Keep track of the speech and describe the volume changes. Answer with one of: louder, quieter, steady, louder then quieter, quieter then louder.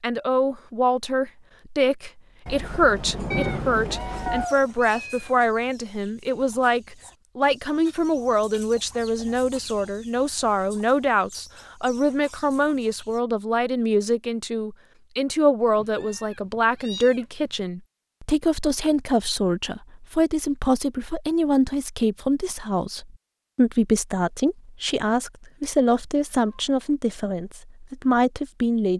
steady.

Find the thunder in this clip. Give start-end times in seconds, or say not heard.
2.5-4.5.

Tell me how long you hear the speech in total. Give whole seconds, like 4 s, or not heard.
29 s.